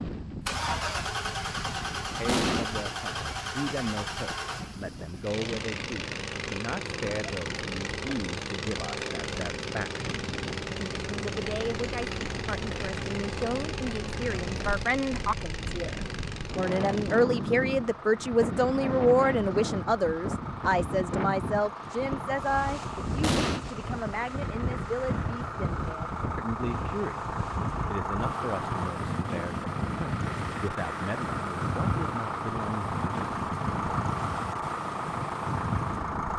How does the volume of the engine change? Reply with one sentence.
The loudness of the engine goes down, then up.